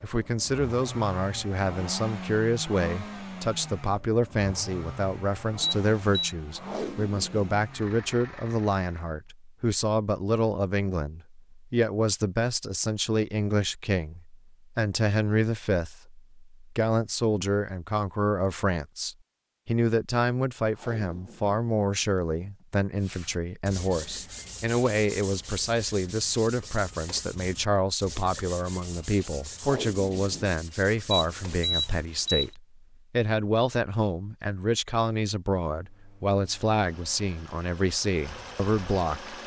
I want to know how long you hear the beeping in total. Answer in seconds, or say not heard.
2 s.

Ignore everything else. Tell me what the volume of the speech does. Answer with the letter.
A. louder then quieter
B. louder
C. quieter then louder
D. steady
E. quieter
D.